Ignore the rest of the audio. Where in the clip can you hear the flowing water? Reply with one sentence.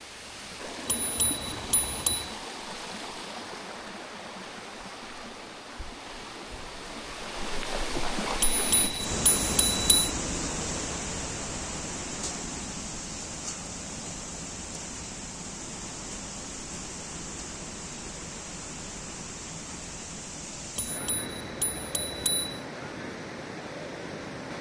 You can hear the flowing water from 0.0 to 24.5 s.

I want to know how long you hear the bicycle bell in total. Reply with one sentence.
The bicycle bell can be heard for 5 seconds in total.